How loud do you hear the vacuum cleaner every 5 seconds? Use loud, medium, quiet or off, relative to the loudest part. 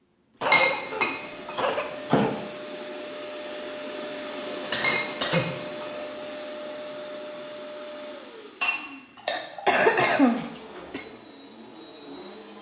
loud, loud, medium.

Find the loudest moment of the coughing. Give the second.
10 s.